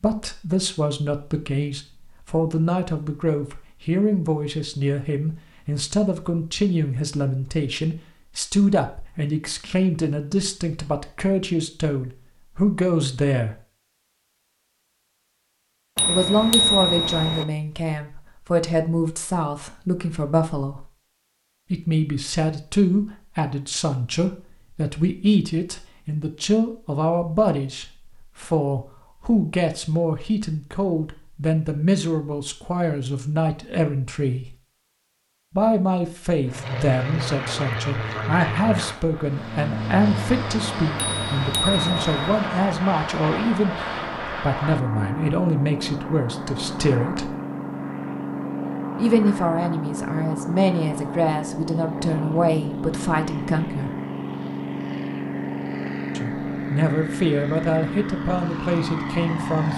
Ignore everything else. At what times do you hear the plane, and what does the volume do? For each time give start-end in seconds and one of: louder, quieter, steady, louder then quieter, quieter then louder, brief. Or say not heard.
36.5-59.7 steady.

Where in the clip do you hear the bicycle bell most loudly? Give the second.
17 s.